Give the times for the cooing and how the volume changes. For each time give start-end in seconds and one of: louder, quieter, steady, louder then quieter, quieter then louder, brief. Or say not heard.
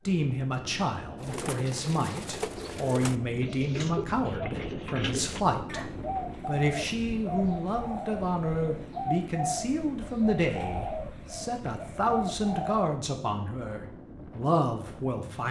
1.1-12.8 steady.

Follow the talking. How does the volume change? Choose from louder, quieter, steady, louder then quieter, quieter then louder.
steady.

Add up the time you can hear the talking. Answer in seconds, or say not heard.
15 s.